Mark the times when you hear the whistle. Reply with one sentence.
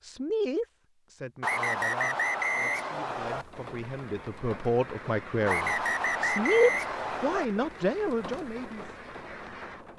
The whistle can be heard from 1.4 to 3.5 s and from 5.5 to 7.5 s.